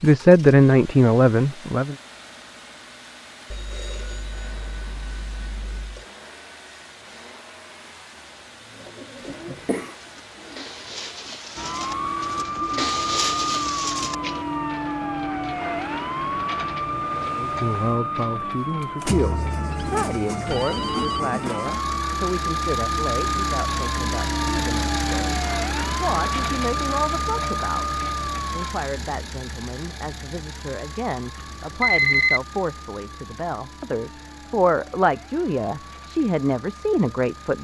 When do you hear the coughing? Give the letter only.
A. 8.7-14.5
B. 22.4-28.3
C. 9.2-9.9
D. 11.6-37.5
C.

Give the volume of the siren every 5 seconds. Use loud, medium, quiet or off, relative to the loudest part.
off, off, loud, loud, loud, loud, quiet, quiet.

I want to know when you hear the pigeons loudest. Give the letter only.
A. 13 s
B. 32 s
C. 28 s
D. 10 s
A.